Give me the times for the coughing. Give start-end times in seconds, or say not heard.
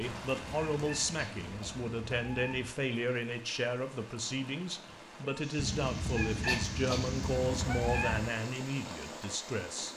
1.1-1.8, 6.5-7.1.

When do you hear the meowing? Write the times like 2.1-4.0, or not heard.
0.0-2.8, 5.5-8.3.